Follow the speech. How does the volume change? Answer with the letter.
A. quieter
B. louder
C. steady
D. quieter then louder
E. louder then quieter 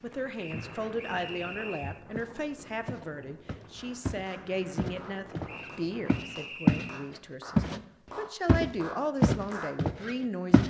D.